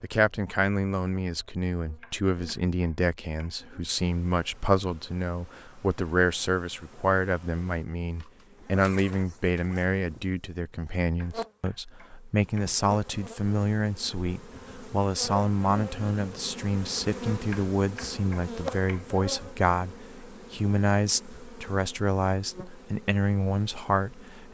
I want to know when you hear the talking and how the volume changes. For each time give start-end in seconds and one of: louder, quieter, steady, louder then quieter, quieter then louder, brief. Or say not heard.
0.0-24.4 steady.